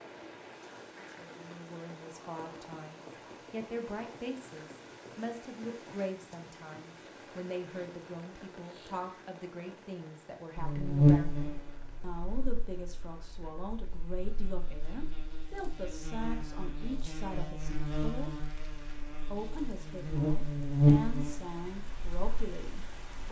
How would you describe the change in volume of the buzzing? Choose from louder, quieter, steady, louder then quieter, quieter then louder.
quieter then louder.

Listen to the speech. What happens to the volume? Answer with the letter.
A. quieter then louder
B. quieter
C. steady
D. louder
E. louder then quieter
C.